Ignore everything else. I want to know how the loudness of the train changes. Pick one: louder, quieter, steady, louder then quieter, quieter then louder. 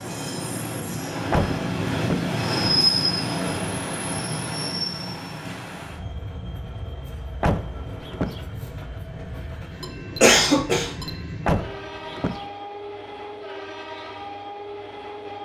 quieter.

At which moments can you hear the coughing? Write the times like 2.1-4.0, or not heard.
9.8-11.1.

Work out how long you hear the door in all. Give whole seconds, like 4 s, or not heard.
3 s.